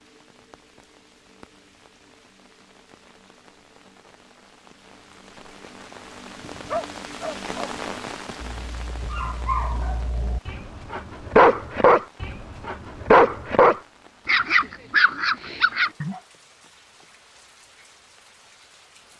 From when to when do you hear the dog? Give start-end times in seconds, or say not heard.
6.4-7.8, 8.4-16.2.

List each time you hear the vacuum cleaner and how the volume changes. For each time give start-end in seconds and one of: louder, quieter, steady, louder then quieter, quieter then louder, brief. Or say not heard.
not heard.